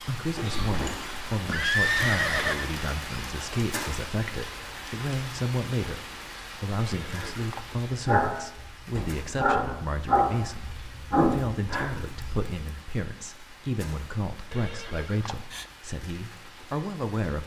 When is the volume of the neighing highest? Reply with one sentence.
The loudest moment of the neighing is at 2 seconds.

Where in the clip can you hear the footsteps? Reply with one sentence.
You can't hear the footsteps here.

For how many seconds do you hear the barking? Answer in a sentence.
You can hear the barking for 5 seconds altogether.